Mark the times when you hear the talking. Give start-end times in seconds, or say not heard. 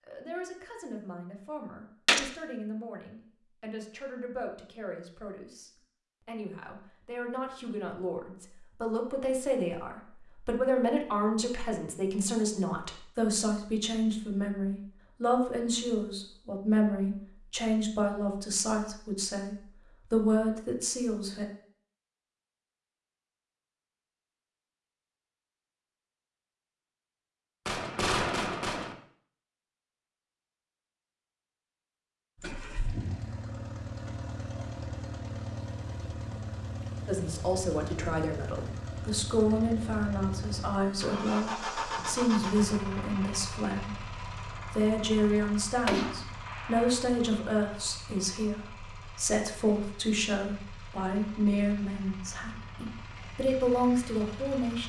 0.1-21.4, 37.0-54.8.